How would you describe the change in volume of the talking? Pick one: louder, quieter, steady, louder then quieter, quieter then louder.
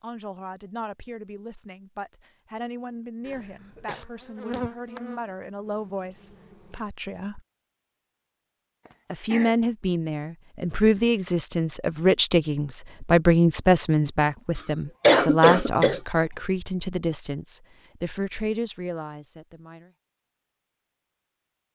louder then quieter.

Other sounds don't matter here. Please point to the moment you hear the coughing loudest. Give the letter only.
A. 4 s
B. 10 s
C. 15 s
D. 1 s
C.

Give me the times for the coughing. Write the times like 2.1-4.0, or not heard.
3.2-4.0, 8.8-9.6, 14.6-16.0.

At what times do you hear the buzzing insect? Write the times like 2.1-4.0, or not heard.
4.0-6.8.